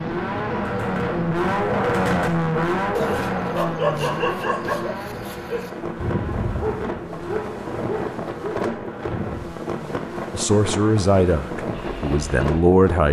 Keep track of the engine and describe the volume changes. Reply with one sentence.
The loudness of the engine goes down.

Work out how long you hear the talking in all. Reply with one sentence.
You can hear the talking for 3 seconds altogether.